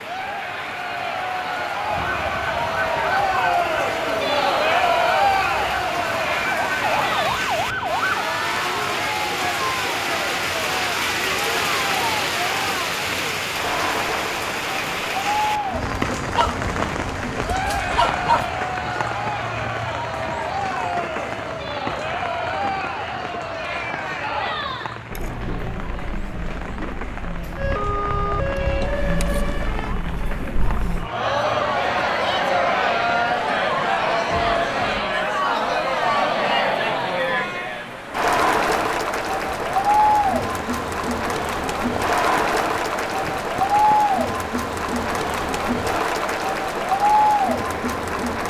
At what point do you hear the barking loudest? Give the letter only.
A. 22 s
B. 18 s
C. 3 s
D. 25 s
B.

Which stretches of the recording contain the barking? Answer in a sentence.
The barking can be heard from 15.7 to 18.5 s.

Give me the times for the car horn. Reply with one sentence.
The car horn can't be heard in this clip.